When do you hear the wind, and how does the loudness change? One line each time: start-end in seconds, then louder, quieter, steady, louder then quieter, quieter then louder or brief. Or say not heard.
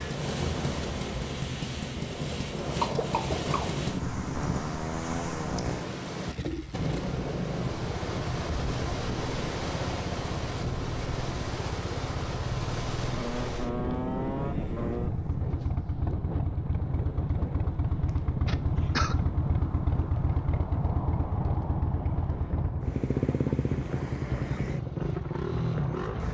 0.0-26.2 quieter.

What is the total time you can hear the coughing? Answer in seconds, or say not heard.
2 s.